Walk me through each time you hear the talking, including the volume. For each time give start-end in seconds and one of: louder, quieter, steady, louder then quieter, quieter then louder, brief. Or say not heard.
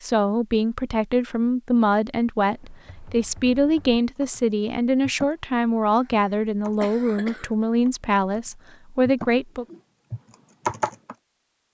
0.0-9.7 steady.